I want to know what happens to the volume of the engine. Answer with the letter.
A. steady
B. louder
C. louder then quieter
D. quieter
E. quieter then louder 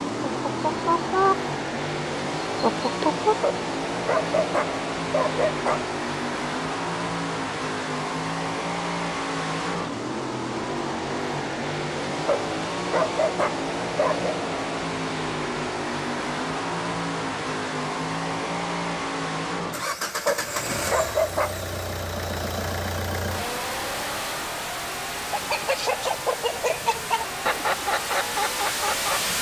A.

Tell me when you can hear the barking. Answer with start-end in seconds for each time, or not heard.
3.4-5.8, 12.2-14.3, 20.2-21.6.